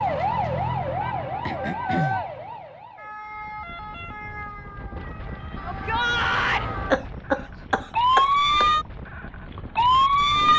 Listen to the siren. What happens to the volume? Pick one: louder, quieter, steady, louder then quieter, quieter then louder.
quieter then louder.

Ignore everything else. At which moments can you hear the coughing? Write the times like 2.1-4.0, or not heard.
1.4-2.2, 6.9-8.7.